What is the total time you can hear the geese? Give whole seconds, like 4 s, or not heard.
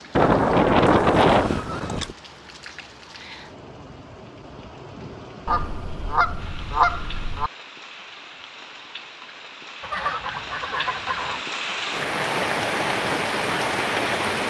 6 s.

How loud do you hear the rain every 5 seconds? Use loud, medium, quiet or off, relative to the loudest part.
quiet, quiet, loud.